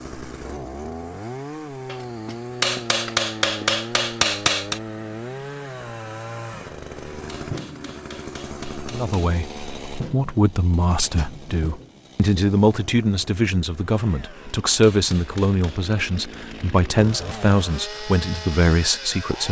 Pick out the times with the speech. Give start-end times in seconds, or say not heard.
8.9-19.4.